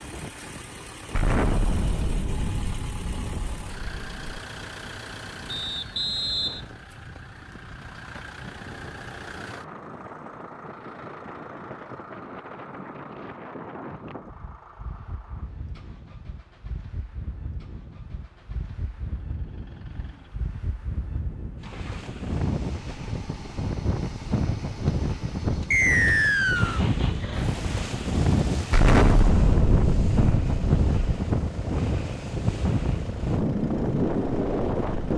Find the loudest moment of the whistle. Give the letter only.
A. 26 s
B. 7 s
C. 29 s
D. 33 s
A.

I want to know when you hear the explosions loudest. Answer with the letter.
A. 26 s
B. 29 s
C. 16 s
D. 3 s
B.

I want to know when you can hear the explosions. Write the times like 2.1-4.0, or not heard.
1.1-4.4, 28.7-31.2.